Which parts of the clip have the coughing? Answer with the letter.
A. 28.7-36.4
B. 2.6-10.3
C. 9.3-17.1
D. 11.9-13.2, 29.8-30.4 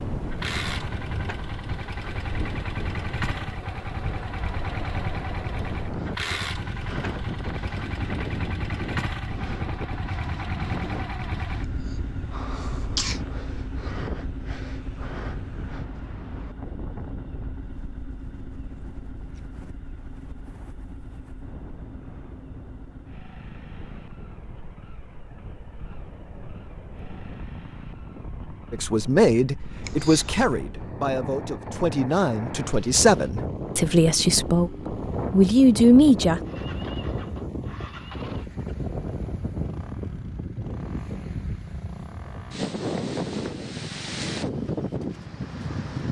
D.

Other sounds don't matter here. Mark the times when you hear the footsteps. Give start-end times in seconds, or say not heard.
not heard.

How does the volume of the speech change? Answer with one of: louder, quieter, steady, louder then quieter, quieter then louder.
quieter then louder.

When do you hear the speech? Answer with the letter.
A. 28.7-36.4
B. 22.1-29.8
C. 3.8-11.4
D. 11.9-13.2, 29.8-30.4
A.